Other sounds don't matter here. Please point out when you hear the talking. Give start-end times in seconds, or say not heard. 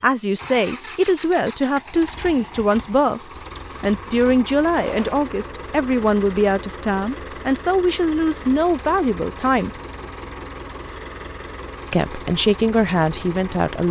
0.0-3.2, 3.8-9.7, 11.9-13.8.